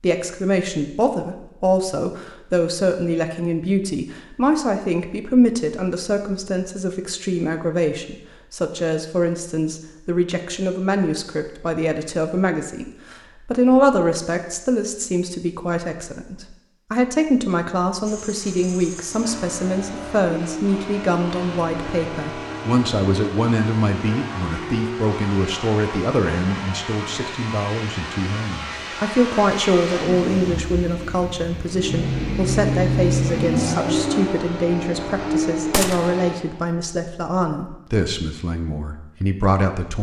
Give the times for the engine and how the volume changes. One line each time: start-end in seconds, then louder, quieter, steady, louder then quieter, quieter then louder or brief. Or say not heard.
18.0-36.4 louder.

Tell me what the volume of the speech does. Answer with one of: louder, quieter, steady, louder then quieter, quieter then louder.
steady.